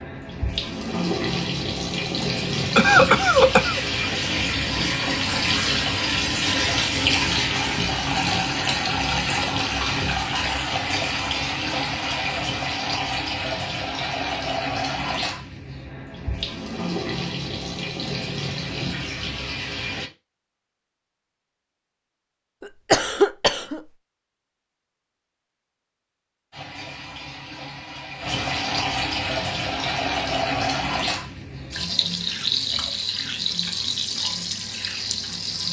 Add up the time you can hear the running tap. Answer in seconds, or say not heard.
29 s.